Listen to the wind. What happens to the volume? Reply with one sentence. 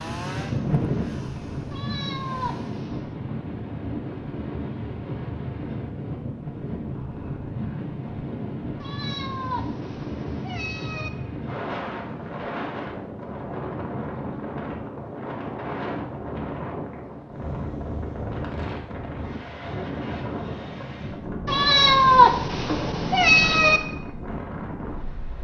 The volume of the wind stays about the same.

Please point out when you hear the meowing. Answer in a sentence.
The meowing can be heard from 1.7 to 3.1 s, from 8.8 to 11.1 s and from 21.4 to 23.8 s.